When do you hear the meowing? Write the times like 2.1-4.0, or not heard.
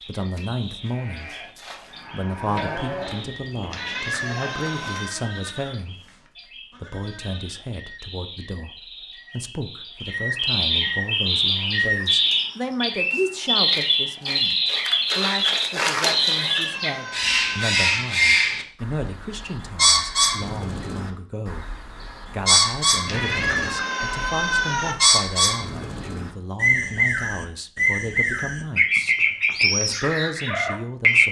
3.7-5.2, 16.1-18.0, 23.1-24.9.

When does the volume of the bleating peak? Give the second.
3 s.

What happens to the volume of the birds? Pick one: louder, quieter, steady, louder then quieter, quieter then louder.
louder.